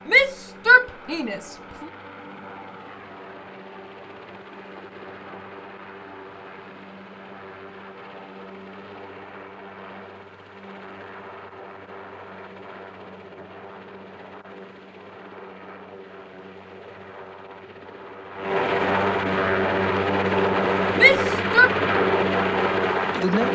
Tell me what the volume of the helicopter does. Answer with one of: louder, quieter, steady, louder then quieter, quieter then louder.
louder.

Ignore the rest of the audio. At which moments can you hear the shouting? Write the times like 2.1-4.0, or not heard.
0.1-1.6, 20.9-21.7.